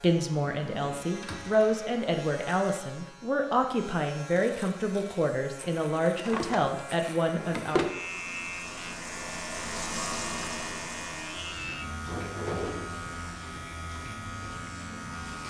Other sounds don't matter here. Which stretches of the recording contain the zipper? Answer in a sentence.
You can't hear the zipper here.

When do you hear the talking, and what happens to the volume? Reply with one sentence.
You can hear the talking from 0.0 to 7.8 s, at a steady volume.